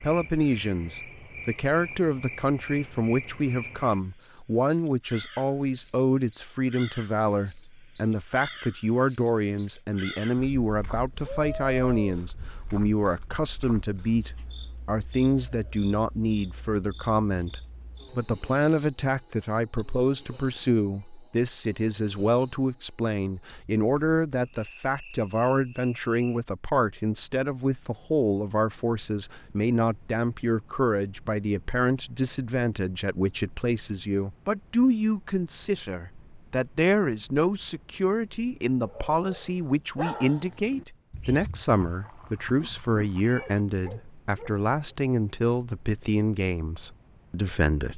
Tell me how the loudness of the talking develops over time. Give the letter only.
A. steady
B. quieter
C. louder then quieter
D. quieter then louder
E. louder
A.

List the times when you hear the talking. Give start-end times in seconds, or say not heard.
0.0-47.9.